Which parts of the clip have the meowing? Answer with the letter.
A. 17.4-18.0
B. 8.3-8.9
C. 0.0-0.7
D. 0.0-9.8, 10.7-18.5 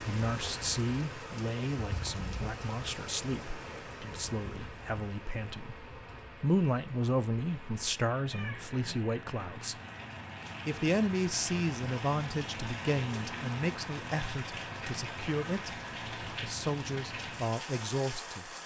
B.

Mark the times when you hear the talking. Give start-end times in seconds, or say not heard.
0.0-9.8, 10.7-18.5.